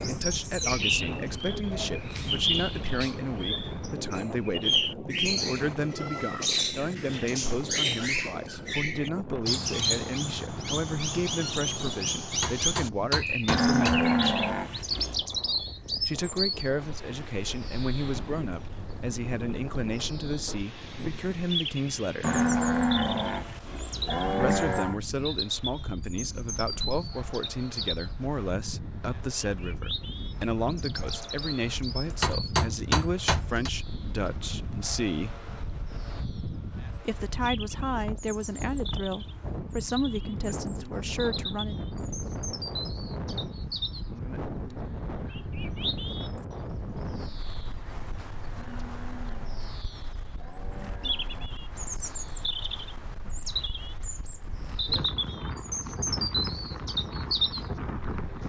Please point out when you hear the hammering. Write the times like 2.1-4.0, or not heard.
12.4-14.1, 32.2-33.7.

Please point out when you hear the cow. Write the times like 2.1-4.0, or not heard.
13.4-15.2, 22.2-25.0, 48.5-51.5.